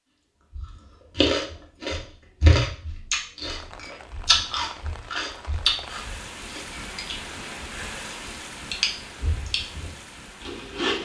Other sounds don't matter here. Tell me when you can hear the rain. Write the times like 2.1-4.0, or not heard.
3.5-10.9.